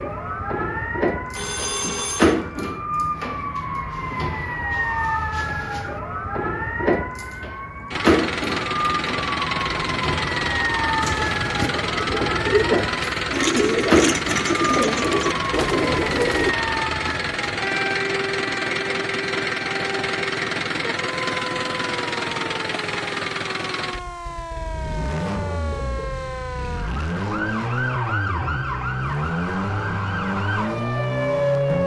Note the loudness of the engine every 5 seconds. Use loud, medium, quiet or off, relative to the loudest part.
off, loud, loud, loud, loud, loud, loud.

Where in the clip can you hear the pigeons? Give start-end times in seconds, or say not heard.
11.0-16.6.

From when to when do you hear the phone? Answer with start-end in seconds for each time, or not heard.
1.4-2.4.